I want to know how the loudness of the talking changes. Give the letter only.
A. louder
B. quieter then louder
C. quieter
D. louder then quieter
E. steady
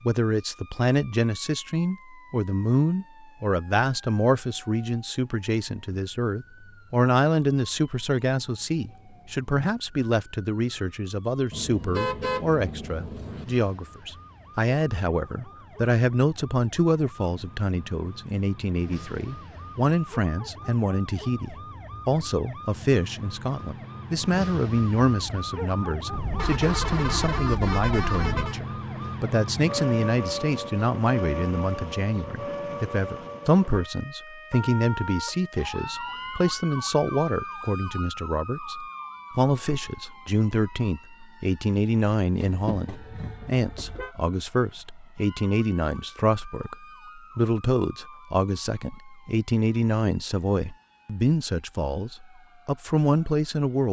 E.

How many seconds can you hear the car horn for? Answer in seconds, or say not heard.
6 s.